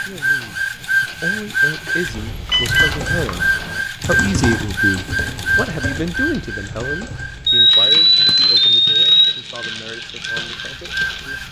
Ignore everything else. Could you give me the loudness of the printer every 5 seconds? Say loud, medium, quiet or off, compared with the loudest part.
loud, medium, medium.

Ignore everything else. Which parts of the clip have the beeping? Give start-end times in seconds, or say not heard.
2.5-3.9, 7.5-9.3.